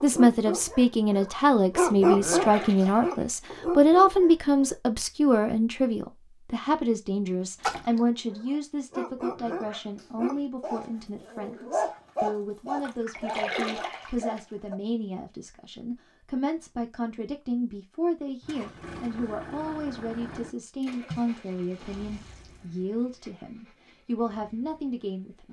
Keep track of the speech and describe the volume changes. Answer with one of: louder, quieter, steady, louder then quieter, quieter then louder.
quieter.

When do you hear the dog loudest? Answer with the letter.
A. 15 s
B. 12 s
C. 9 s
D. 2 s
D.